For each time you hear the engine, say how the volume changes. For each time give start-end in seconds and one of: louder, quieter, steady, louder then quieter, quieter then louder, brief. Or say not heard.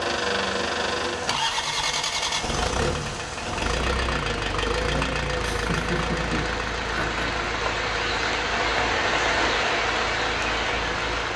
0.0-11.3 quieter.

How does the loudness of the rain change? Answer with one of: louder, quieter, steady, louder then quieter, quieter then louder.
louder.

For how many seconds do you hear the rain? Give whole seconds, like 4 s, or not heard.
11 s.